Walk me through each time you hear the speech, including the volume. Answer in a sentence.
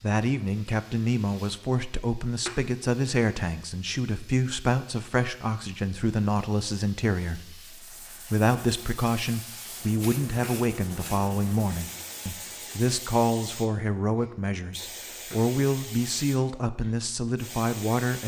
The speech can be heard from 0.0 to 18.2 s, at a steady volume.